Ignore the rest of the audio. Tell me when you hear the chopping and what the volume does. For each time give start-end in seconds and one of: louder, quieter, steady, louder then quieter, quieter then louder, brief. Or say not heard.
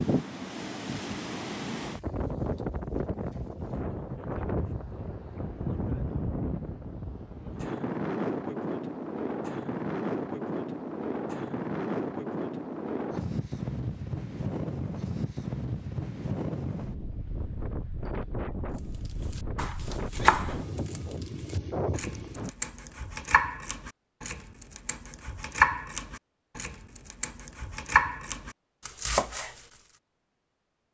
19.3-29.6 quieter then louder.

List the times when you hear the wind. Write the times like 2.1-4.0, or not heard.
0.0-22.5.